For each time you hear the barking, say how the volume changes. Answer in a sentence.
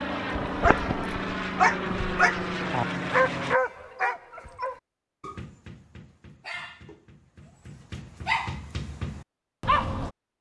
You can hear the barking from 0.3 to 10.1 s, getting quieter then louder.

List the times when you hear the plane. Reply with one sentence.
You can hear the plane from 0.0 to 3.6 s.